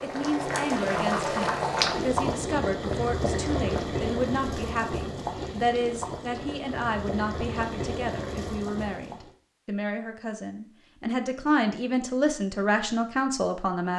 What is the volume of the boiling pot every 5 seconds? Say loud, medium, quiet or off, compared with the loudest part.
loud, medium, off.